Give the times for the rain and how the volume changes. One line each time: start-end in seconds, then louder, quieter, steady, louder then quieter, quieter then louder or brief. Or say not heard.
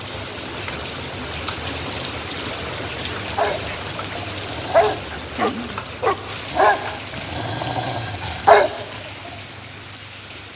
0.0-10.5 quieter.